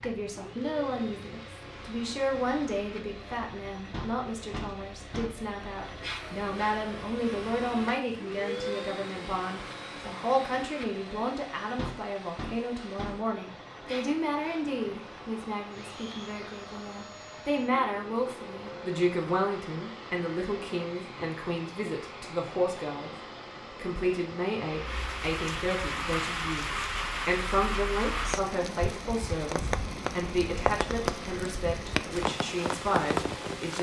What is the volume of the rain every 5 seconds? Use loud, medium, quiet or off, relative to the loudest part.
quiet, quiet, quiet, quiet, quiet, loud, loud.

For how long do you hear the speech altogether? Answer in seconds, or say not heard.
33 s.